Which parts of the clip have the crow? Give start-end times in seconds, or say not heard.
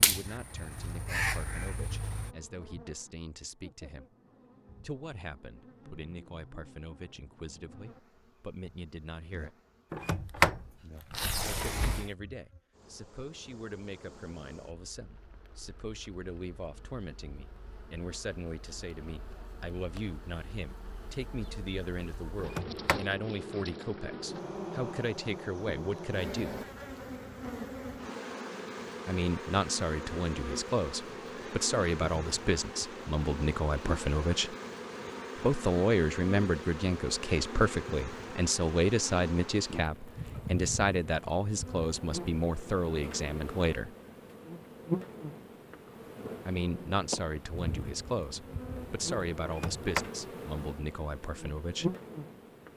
0.0-2.4.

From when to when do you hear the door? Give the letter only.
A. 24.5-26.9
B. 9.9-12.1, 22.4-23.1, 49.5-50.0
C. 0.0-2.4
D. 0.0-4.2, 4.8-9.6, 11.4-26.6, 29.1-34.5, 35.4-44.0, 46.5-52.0
B.